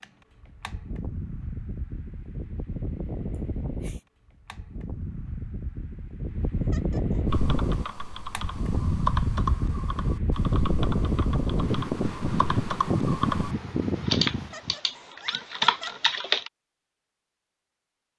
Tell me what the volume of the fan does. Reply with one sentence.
The volume of the fan goes up.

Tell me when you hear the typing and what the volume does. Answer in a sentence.
You can hear the typing from 7.2 to 16.5 s, getting quieter then louder.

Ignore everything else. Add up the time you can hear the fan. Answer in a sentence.
You can hear the fan for 15 seconds altogether.